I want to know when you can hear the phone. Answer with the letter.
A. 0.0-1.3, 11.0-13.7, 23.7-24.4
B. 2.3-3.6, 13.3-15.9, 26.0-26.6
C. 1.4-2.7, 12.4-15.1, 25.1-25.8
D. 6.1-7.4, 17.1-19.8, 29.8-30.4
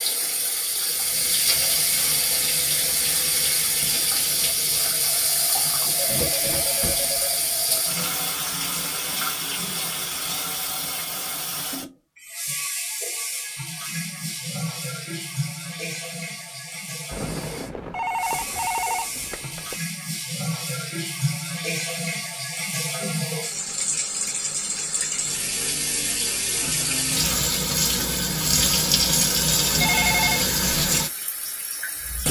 D.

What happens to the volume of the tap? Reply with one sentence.
The volume of the tap goes down, then up.